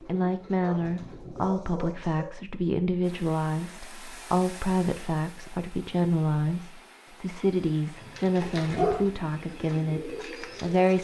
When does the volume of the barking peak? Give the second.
9 s.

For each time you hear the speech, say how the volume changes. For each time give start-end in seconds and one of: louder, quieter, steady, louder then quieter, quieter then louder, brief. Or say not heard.
0.0-10.9 steady.